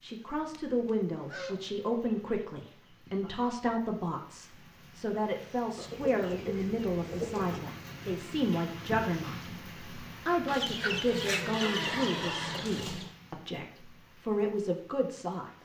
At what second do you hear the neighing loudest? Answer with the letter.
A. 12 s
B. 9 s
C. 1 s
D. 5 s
A.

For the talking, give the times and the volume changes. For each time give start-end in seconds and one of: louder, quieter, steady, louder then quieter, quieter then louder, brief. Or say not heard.
0.0-15.6 steady.